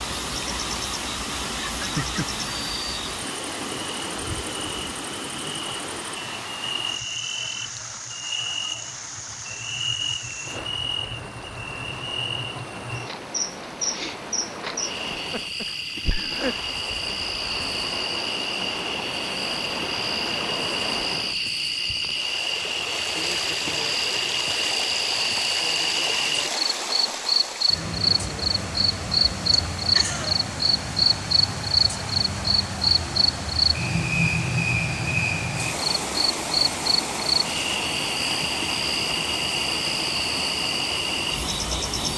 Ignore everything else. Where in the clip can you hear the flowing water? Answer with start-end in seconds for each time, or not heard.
0.0-42.1.